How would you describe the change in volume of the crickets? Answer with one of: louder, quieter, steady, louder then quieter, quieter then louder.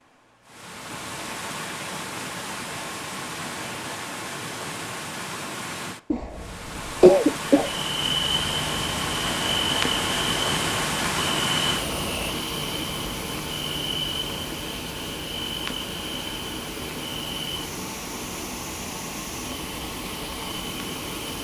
quieter.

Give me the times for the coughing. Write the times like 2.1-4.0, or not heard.
6.1-7.7.